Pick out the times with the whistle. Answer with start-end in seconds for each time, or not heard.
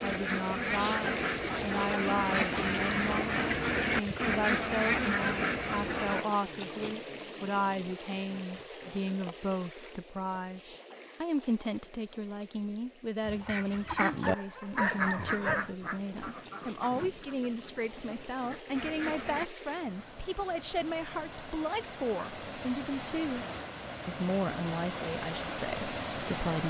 not heard.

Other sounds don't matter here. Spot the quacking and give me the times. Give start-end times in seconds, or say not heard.
0.0-6.2, 13.2-19.5.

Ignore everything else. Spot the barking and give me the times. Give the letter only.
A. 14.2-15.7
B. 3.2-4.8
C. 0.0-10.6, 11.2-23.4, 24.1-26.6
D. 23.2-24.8
A.